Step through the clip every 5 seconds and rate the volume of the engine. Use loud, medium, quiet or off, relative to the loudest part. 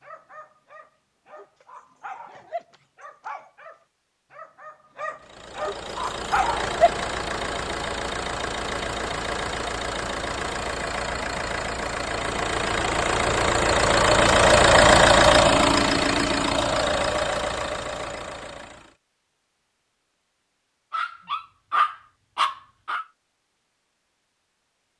off, medium, loud, loud, off.